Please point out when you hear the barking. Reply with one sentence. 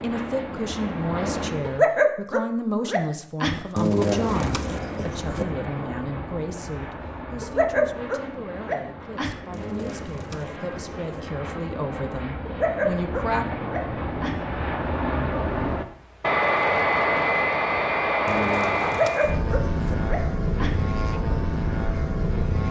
The barking can be heard from 1.6 to 3.6 s, from 7.4 to 9.4 s, from 12.4 to 14.4 s and from 18.8 to 20.8 s.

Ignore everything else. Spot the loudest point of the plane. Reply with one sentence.
The loudest moment of the plane is at 17 seconds.